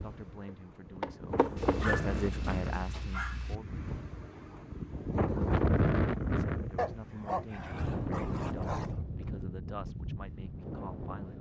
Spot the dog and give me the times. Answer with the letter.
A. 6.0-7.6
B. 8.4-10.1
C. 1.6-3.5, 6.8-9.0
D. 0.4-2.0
C.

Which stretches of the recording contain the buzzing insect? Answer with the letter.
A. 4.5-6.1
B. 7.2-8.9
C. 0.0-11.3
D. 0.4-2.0
D.